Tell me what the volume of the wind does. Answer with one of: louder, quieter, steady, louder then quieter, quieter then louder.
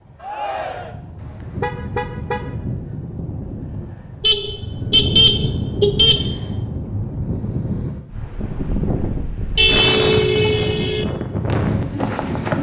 louder.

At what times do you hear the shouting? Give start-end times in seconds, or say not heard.
0.2-0.9.